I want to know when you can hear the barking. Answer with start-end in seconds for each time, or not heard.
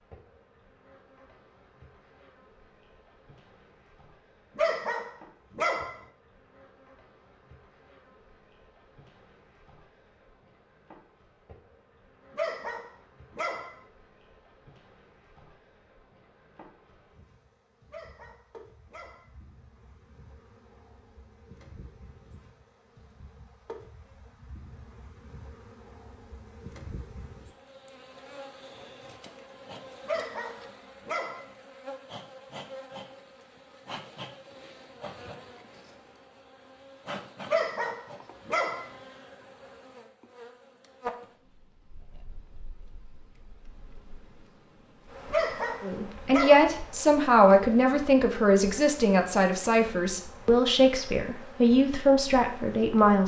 4.5-6.0, 12.3-13.8, 17.9-19.3, 30.1-31.4, 37.5-38.9, 45.3-46.7.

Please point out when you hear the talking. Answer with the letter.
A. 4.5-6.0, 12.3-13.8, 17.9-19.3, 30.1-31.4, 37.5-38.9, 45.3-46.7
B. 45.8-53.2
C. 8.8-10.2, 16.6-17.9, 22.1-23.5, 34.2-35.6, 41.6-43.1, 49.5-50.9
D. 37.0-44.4
B.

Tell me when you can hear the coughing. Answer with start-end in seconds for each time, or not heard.
not heard.